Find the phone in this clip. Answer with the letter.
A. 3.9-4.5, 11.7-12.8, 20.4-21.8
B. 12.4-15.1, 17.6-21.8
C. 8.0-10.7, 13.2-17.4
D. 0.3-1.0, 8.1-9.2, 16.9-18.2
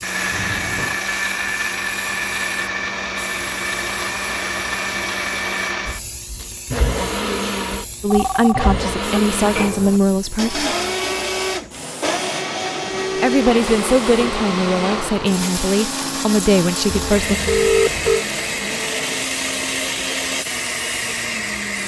D.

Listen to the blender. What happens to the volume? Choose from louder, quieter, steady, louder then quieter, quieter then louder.
steady.